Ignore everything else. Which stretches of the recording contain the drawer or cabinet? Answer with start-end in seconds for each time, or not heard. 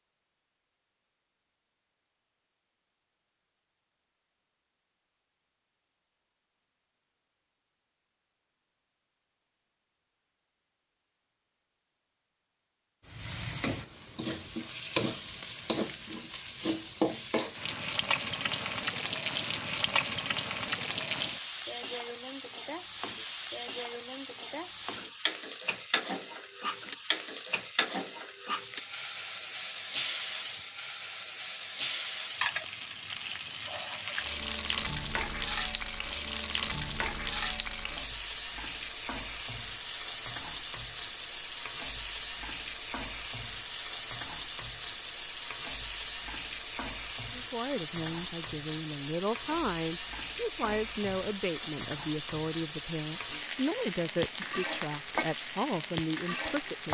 not heard.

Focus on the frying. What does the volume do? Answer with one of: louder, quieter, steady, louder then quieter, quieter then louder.
steady.